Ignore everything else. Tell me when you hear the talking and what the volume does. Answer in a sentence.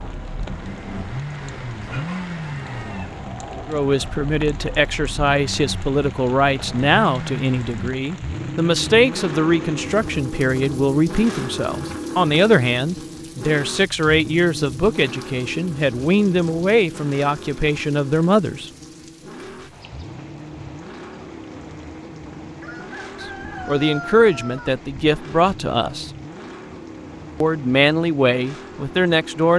The talking can be heard from 3.6 to 18.7 s, at a steady volume; briefly from 23.2 to 26.1 s; and briefly from 27.4 to 29.5 s.